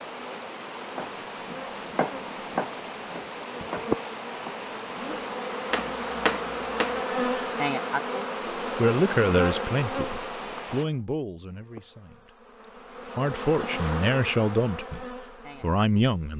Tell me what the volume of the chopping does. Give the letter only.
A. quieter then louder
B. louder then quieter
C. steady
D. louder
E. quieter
A.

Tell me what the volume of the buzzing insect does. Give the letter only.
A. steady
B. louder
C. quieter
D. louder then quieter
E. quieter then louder
D.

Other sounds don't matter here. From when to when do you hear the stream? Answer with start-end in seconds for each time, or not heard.
0.0-10.8.